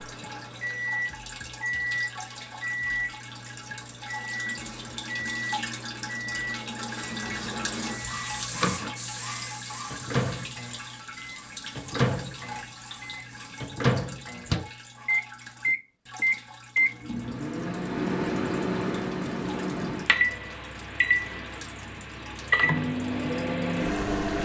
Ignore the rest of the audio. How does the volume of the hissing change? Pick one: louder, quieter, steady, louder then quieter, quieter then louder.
louder then quieter.